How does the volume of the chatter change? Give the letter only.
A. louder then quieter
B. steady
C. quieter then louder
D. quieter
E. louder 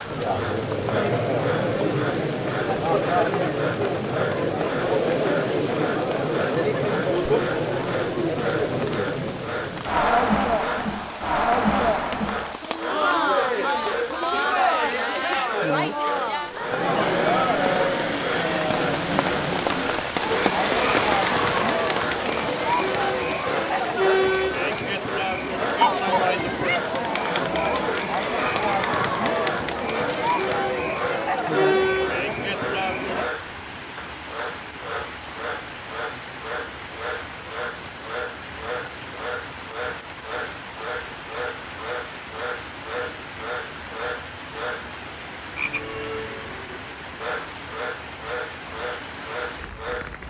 B.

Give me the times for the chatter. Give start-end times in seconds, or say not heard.
0.0-33.3.